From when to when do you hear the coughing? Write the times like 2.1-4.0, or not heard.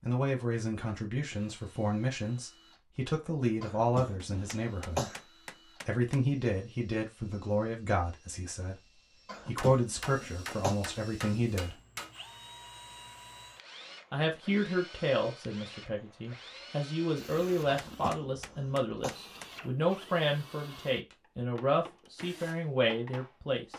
3.6-5.2, 9.2-10.8, 17.6-19.1.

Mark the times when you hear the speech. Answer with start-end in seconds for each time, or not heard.
0.0-11.8, 14.1-23.7.